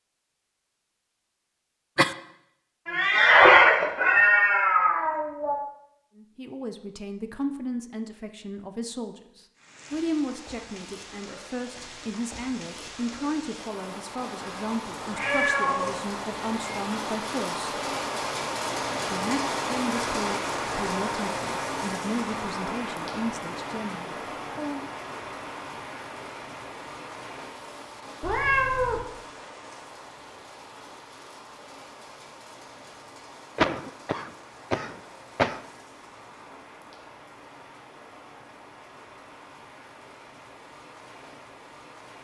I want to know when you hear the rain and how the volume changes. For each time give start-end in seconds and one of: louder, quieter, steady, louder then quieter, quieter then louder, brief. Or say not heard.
9.6-42.2 louder then quieter.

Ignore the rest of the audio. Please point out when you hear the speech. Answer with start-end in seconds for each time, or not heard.
6.2-17.8, 19.1-24.9.